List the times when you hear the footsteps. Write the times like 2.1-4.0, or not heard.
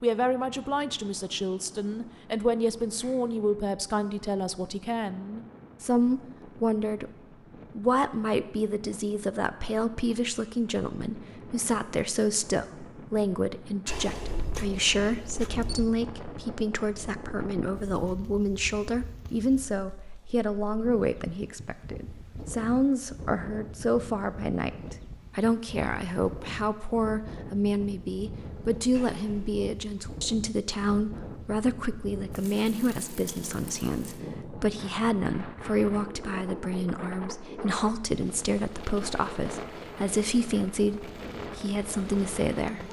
not heard.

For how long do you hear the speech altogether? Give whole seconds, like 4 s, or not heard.
42 s.